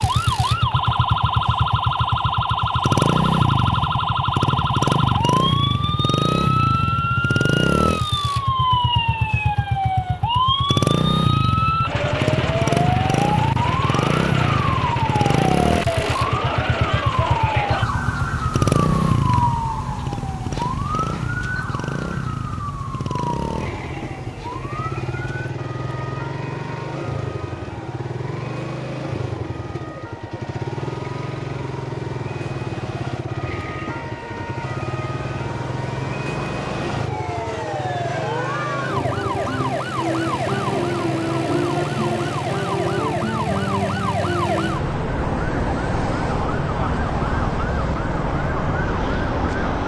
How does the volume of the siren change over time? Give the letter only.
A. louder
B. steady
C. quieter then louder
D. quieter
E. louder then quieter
C.